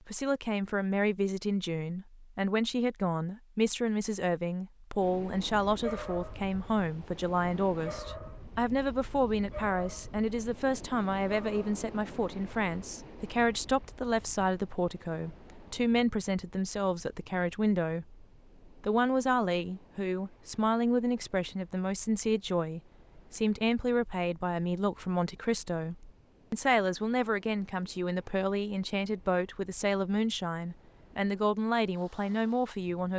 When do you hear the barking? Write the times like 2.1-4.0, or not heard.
5.8-6.5, 7.8-8.4, 9.5-10.2, 11.2-11.7.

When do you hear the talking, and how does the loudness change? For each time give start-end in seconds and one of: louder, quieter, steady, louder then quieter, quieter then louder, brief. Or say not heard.
0.1-33.1 steady.